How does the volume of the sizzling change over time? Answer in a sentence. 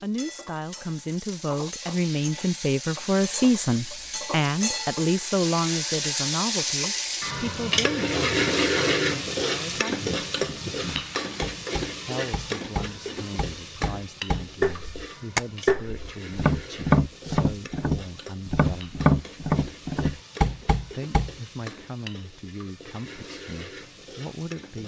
The volume of the sizzling goes up, then down.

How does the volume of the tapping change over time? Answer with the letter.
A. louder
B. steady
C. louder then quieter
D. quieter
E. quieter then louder
A.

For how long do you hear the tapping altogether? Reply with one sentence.
The tapping can be heard for 11 seconds in total.